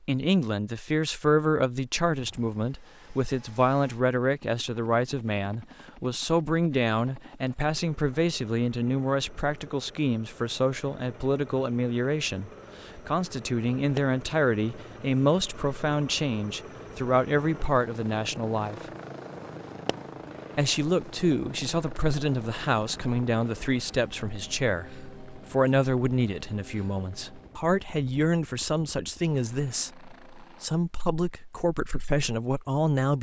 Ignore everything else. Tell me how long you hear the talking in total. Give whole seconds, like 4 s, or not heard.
31 s.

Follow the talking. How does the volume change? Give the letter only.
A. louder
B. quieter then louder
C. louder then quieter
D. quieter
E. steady
E.